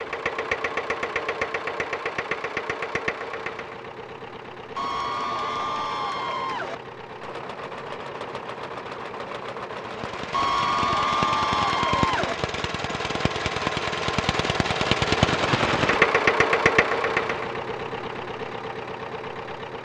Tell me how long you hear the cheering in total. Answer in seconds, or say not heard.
4 s.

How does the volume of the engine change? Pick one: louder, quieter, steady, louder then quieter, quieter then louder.
quieter then louder.